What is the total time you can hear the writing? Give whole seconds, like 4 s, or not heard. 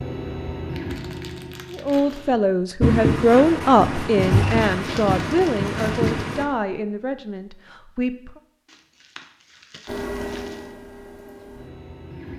4 s.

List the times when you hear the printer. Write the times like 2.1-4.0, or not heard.
0.0-2.5, 9.8-12.3.